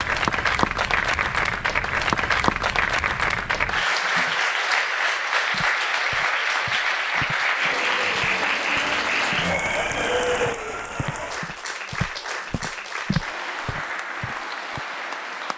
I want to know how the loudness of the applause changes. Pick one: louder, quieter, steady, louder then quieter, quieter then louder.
quieter.